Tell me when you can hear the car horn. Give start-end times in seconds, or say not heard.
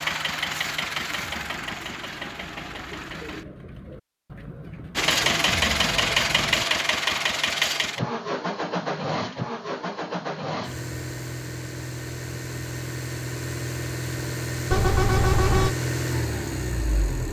14.7-15.8.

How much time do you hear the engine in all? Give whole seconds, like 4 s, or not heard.
16 s.